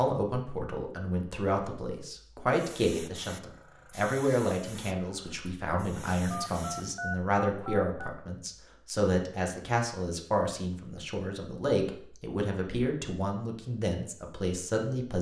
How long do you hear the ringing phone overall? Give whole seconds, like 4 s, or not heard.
2 s.